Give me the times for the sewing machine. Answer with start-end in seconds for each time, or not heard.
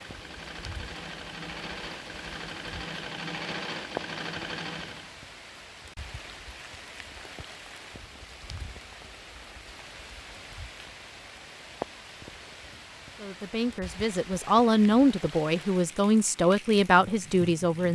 0.0-5.1.